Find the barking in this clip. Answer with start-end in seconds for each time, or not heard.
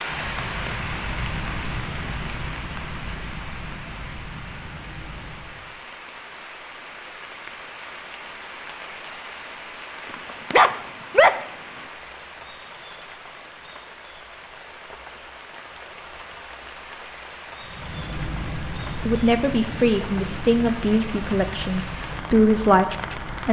10.1-11.8.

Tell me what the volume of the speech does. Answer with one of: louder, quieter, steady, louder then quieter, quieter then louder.
quieter then louder.